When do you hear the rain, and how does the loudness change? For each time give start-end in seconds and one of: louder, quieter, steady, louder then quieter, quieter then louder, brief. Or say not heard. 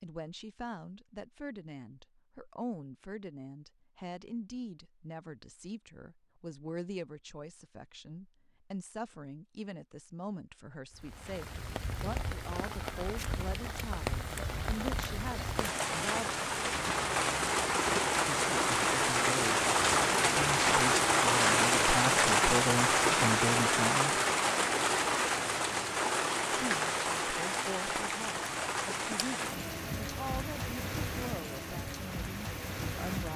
10.9-33.3 louder then quieter.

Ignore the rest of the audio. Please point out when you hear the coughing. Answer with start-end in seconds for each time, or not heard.
not heard.